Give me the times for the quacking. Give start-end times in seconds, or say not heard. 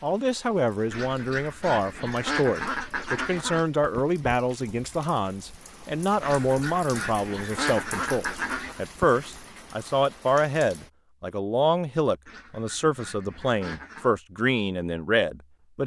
0.9-3.6, 6.2-8.8, 12.2-14.1.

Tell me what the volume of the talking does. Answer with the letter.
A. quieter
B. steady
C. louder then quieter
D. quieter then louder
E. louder
B.